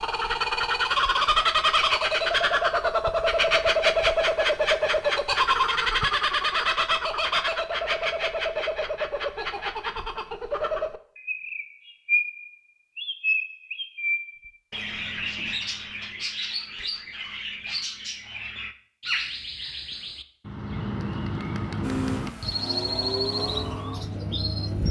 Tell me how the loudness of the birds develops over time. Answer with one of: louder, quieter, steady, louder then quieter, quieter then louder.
quieter.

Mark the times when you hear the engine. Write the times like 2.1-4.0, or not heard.
21.8-24.8.